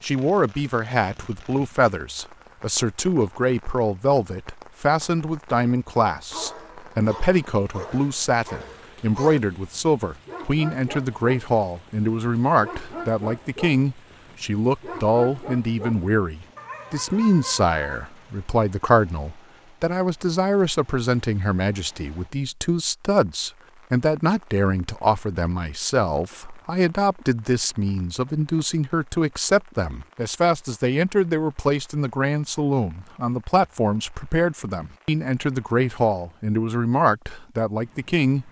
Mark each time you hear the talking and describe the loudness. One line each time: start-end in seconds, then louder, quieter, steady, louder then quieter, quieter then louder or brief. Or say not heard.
0.0-38.4 steady.